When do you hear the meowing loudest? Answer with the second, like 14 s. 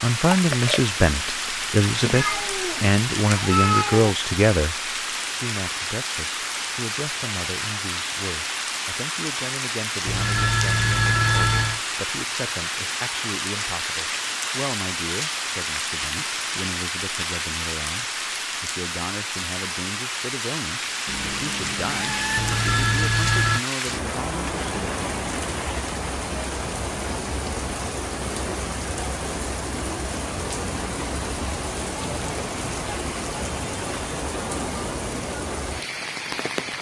4 s.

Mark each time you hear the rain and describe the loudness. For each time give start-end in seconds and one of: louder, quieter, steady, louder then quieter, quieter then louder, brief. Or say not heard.
0.0-36.7 steady.